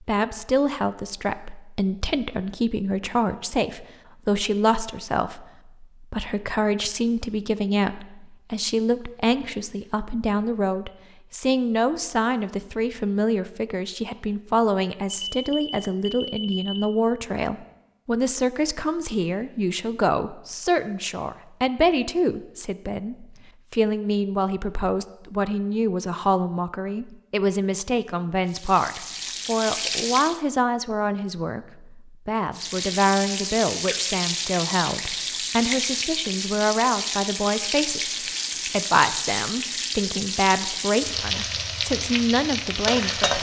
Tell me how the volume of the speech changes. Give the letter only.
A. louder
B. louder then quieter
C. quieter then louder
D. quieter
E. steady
E.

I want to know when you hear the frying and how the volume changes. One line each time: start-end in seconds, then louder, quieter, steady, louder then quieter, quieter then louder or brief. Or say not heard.
28.4-30.4 brief
32.5-43.3 steady.